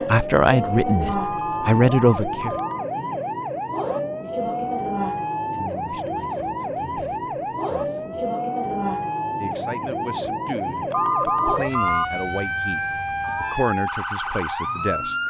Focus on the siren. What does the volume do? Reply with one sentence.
The volume of the siren stays about the same.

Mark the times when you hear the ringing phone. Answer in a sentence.
The ringing phone can be heard from 1.1 to 2.9 s and from 10.9 to 12.1 s.